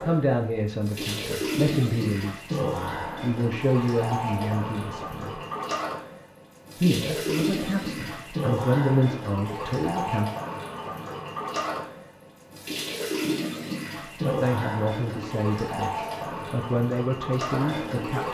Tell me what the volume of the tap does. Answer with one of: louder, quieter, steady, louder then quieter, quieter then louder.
steady.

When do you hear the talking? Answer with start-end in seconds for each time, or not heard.
0.0-5.4, 6.8-10.3, 14.2-18.2.